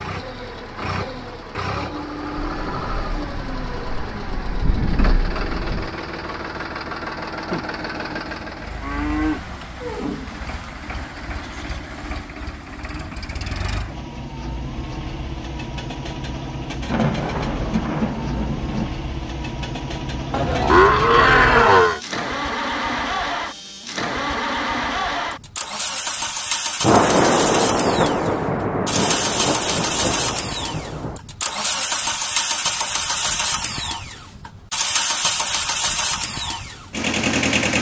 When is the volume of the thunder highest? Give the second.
27 s.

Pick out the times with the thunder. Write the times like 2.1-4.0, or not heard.
2.4-5.9, 16.9-18.9, 26.8-31.2.